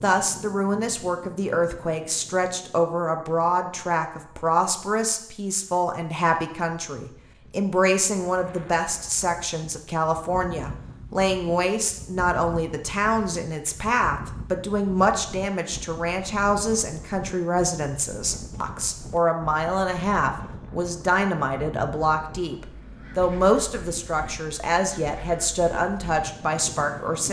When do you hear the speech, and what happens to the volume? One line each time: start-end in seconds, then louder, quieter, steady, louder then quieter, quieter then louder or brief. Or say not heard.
0.0-27.2 steady.